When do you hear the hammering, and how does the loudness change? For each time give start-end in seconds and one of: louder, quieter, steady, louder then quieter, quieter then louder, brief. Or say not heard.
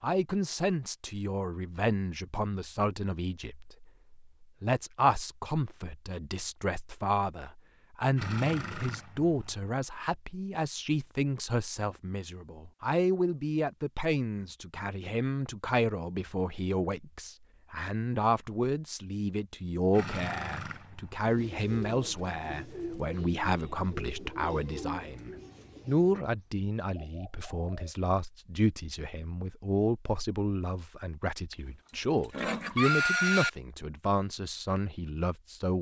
not heard.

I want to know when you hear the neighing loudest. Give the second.
33 s.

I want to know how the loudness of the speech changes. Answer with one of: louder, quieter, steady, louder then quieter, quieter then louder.
steady.